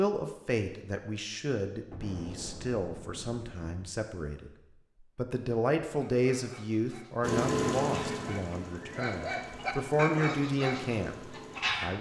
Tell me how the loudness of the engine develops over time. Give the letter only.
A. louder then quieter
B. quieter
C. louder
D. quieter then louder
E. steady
B.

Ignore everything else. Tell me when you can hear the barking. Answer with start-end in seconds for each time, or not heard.
6.0-11.9.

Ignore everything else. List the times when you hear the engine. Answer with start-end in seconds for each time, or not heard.
7.2-11.9.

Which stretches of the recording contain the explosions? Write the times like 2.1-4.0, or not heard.
1.9-4.0.